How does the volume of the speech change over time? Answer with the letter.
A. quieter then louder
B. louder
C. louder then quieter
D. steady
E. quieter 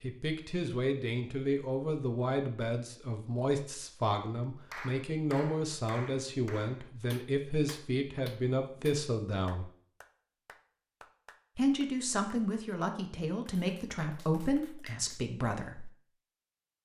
D.